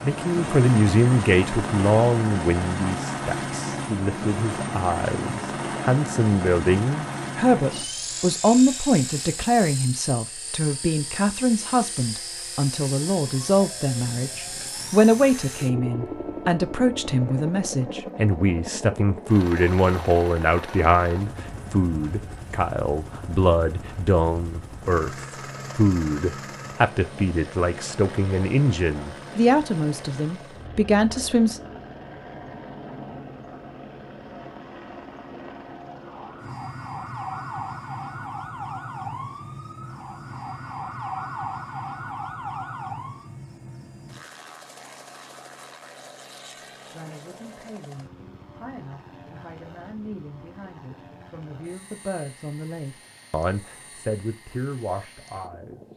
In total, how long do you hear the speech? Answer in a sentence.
The speech can be heard for 40 seconds in total.